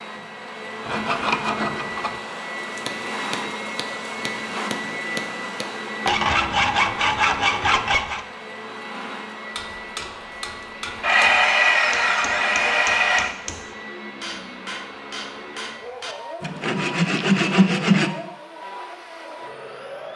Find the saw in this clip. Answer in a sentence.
You can hear the saw from 0.8 to 2.1 s, from 6.0 to 8.2 s, from 11.0 to 13.3 s and from 16.4 to 18.1 s.